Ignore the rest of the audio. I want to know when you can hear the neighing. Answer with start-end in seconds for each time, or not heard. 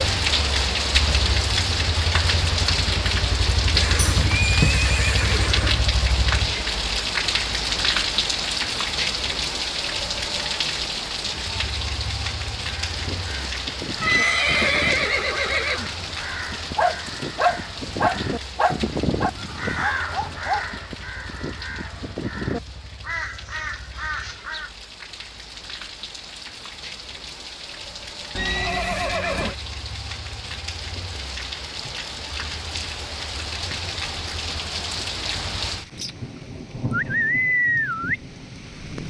3.8-5.8, 14.0-15.9, 28.4-29.6.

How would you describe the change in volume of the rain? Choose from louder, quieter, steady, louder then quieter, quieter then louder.
quieter then louder.